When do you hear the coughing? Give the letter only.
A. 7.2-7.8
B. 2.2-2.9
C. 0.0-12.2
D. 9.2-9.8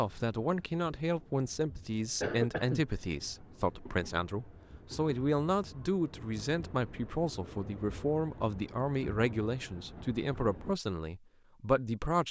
B.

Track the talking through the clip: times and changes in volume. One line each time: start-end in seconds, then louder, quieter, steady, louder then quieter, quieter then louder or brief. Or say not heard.
0.0-12.2 steady.